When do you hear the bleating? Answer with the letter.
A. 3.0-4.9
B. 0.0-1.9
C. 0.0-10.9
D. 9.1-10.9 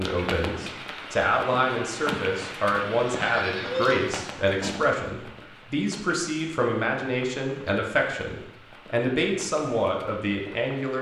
A.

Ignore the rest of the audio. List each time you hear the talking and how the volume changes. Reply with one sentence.
You can hear the talking from 0.0 to 10.9 s, at a steady volume.